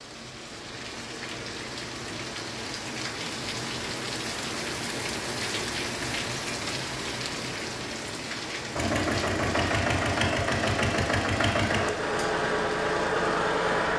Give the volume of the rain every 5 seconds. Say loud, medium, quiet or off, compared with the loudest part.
loud, loud, medium.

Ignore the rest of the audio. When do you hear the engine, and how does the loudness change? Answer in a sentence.
The engine can be heard from 8.8 to 13.9 s, at a steady volume.